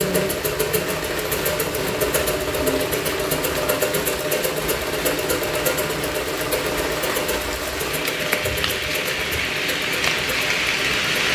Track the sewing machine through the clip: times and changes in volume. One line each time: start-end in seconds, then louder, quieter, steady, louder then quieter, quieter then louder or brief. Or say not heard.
0.0-11.3 quieter.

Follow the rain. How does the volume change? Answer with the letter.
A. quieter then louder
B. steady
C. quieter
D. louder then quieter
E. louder
E.